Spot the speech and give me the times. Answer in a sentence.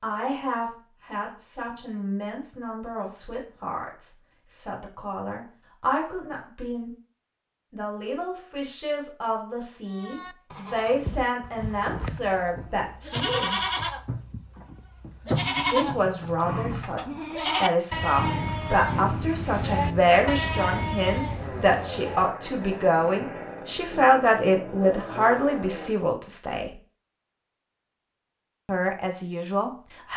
You can hear the speech from 0.0 to 6.9 s, from 7.7 to 13.6 s, from 15.7 to 26.7 s and from 28.6 to 30.1 s.